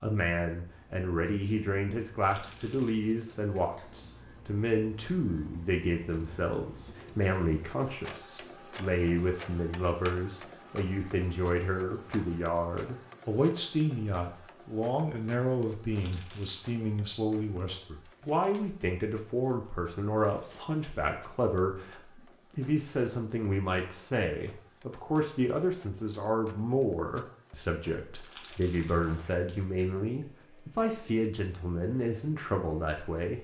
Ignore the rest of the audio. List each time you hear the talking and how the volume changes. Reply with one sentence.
You can hear the talking from 0.0 to 33.3 s, at a steady volume.